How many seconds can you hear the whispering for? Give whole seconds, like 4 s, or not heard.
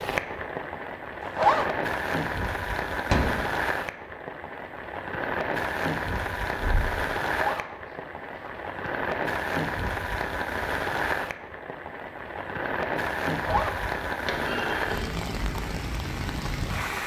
not heard.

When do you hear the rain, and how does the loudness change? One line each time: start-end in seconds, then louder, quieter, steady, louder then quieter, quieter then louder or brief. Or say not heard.
0.0-17.0 steady.